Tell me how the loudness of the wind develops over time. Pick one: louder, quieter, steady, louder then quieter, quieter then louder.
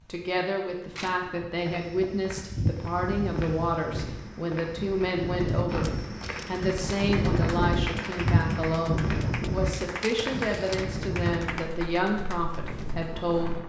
louder then quieter.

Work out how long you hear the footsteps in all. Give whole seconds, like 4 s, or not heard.
12 s.